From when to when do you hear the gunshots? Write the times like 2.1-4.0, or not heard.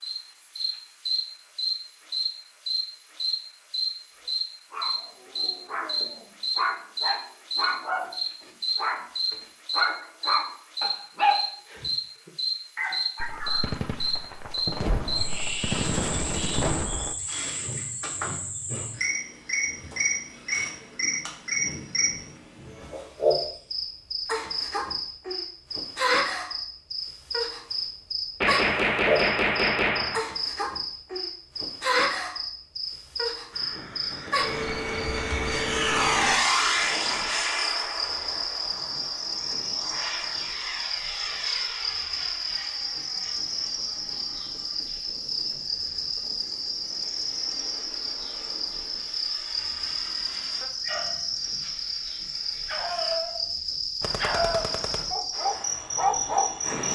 13.2-17.1, 28.4-30.2, 54.0-55.1.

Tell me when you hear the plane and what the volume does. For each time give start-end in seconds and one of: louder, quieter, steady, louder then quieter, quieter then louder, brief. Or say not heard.
33.5-53.2 quieter
55.3-56.9 brief.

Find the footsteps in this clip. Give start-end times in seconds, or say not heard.
not heard.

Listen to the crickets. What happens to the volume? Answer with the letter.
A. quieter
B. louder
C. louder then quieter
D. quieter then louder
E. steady
E.